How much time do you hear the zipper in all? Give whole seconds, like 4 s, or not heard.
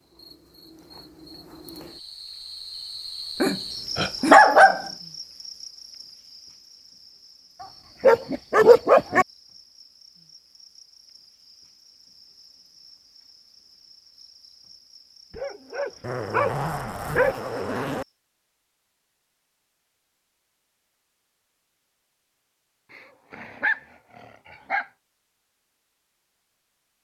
2 s.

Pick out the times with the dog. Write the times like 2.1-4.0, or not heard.
3.4-4.8, 8.0-9.2, 15.3-17.4, 22.9-24.9.